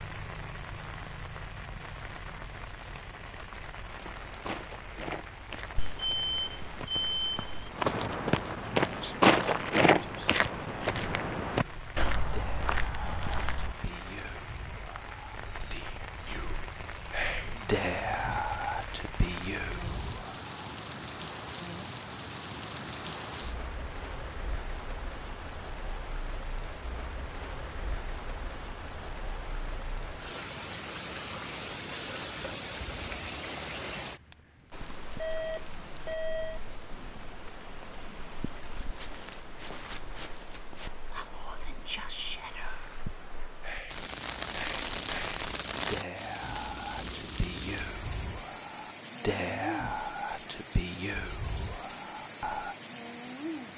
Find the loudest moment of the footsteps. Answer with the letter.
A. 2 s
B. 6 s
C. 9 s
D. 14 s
C.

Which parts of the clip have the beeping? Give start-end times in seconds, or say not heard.
5.8-7.7, 35.1-36.6.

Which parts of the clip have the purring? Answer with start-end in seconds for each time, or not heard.
not heard.